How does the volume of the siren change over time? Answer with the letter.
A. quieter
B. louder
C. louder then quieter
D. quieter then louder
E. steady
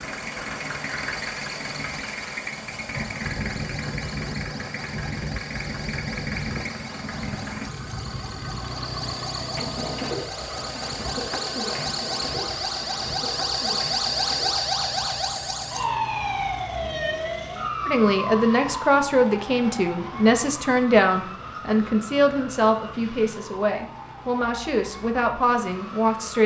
C.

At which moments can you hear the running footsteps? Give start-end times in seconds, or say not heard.
not heard.